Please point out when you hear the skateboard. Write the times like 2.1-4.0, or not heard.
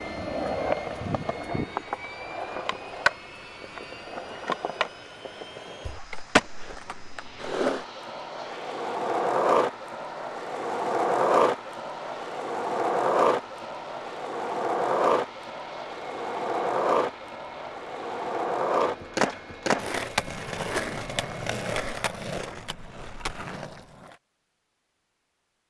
0.0-24.1.